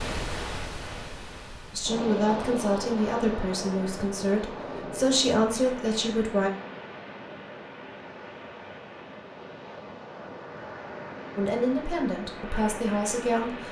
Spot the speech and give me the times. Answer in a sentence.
You can hear the speech from 1.7 to 6.5 s and from 11.3 to 13.6 s.